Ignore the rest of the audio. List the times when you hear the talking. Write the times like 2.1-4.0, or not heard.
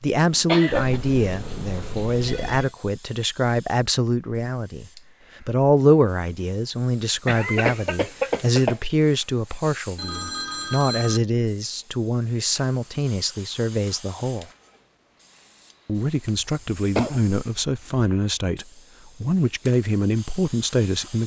0.0-14.4, 15.8-21.2.